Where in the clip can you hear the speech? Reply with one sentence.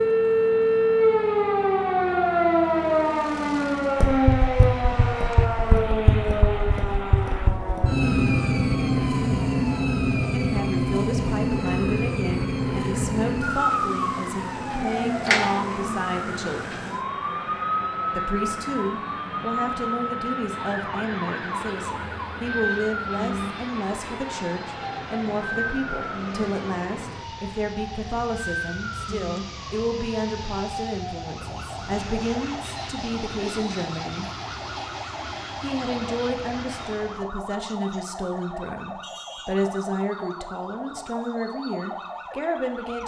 The speech can be heard from 10.3 to 16.8 s, from 18.1 to 34.2 s and from 35.6 to 43.0 s.